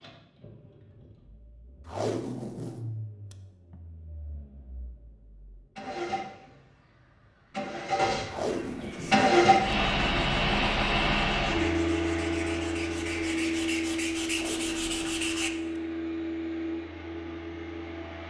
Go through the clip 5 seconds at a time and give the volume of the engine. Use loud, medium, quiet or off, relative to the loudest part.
quiet, loud, loud, medium.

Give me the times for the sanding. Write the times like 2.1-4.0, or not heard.
8.9-15.5.